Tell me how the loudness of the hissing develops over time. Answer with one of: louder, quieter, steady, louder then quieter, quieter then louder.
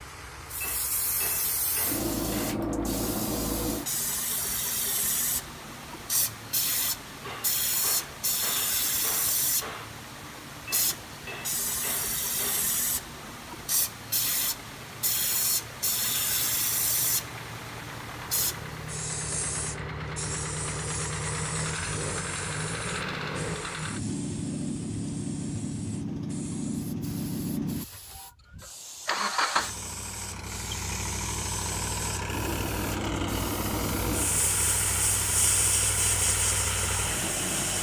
quieter then louder.